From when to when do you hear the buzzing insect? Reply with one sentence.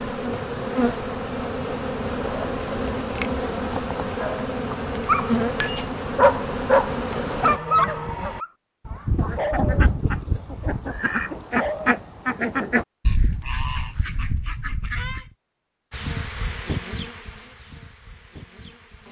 You can hear the buzzing insect from 0.0 to 7.6 s and from 15.9 to 19.0 s.